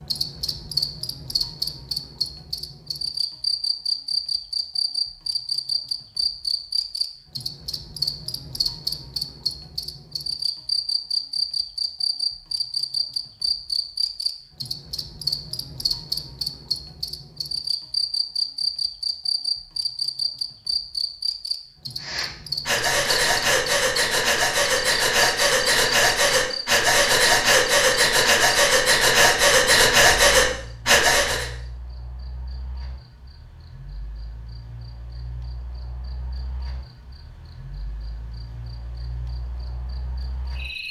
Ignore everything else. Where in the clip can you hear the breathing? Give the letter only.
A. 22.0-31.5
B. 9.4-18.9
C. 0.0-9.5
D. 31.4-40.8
A.